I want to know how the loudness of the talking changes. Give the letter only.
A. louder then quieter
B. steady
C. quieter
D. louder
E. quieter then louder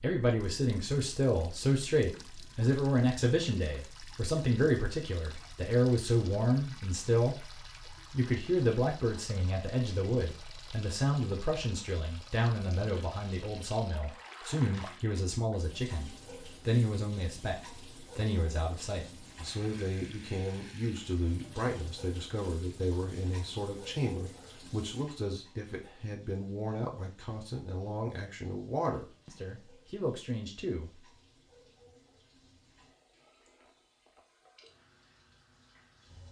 C.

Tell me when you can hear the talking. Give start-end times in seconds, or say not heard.
0.0-7.3, 8.1-31.0.